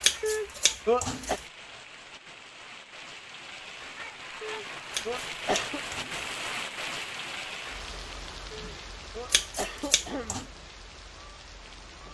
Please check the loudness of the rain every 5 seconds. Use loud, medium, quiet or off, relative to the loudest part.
medium, loud, medium.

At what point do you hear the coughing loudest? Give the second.
1 s.